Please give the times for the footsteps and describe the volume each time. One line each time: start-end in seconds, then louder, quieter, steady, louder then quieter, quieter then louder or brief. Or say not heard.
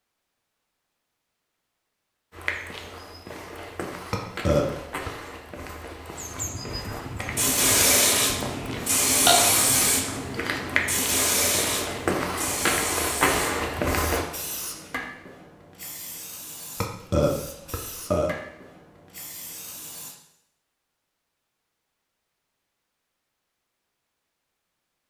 2.3-14.2 louder.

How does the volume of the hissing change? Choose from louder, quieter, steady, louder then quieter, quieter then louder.
quieter.